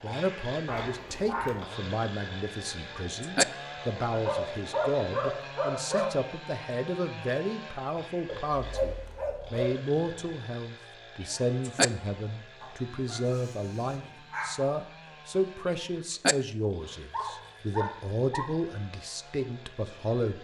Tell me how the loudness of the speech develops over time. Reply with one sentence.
The volume of the speech stays about the same.